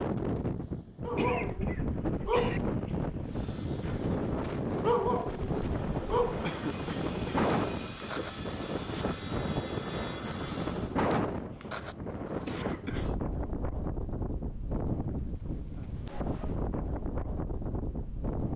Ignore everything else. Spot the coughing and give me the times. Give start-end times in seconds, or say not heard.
1.1-2.6, 6.4-8.3, 12.4-13.2.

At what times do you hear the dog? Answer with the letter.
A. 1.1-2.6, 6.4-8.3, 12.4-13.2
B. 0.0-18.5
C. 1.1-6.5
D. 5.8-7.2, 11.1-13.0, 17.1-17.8
C.